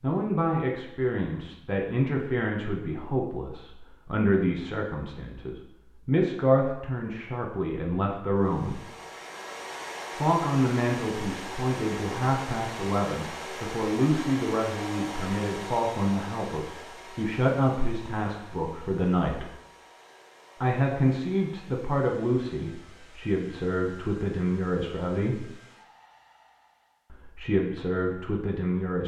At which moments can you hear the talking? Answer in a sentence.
The talking can be heard from 0.0 to 8.8 s, from 10.2 to 19.5 s, from 20.6 to 25.5 s and from 27.1 to 29.0 s.